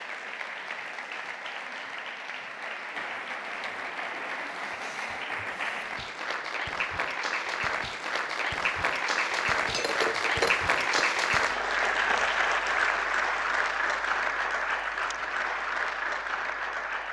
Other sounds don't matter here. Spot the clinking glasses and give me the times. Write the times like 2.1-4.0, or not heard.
9.5-11.1.